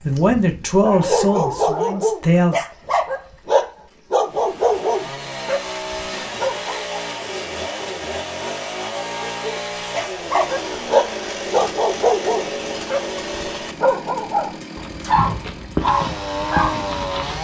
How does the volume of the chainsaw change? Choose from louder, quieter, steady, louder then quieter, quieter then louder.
steady.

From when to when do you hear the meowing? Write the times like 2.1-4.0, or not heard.
not heard.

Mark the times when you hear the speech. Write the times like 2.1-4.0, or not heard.
0.0-2.6.